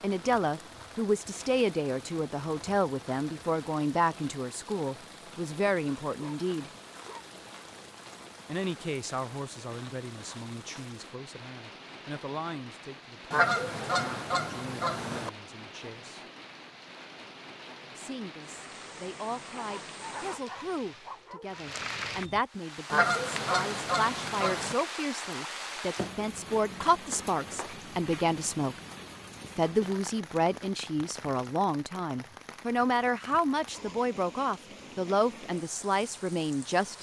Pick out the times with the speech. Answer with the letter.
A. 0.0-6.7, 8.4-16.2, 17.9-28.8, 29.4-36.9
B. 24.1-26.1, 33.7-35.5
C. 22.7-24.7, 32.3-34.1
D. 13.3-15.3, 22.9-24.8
A.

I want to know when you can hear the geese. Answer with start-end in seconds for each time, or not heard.
13.3-15.3, 22.9-24.8.